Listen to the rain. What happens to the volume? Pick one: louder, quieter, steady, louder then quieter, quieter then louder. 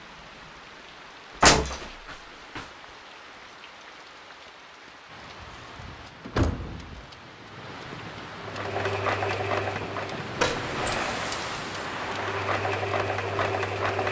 louder.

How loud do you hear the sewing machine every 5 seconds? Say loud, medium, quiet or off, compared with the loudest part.
off, loud, loud.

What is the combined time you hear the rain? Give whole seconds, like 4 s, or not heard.
14 s.